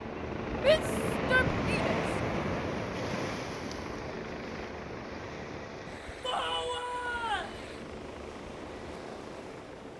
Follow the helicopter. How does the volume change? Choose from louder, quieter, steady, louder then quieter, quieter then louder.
quieter.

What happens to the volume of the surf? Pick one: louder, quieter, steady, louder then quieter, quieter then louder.
quieter.